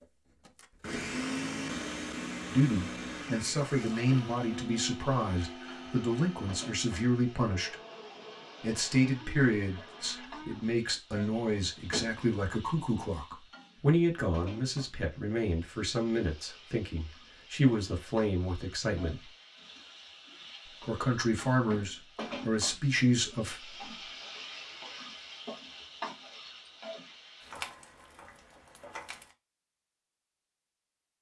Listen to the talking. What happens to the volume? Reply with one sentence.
The volume of the talking stays about the same.